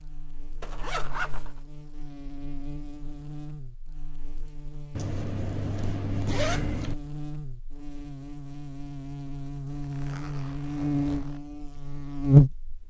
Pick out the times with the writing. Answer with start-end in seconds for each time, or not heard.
not heard.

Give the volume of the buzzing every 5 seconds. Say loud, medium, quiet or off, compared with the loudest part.
quiet, quiet, loud.